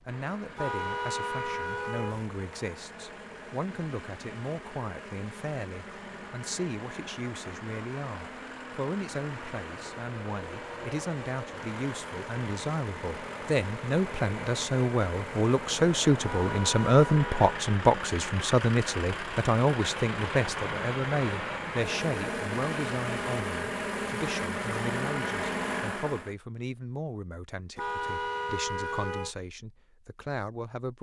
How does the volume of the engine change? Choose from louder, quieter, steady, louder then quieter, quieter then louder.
louder.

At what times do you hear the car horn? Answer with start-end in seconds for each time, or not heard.
0.6-2.2, 16.2-17.5, 27.8-29.4.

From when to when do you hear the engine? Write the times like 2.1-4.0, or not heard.
0.0-26.4.